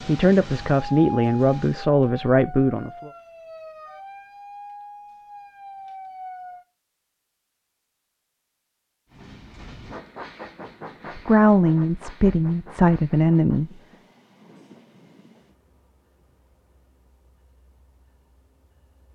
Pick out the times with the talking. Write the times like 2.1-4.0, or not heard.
0.1-3.1, 11.2-13.7.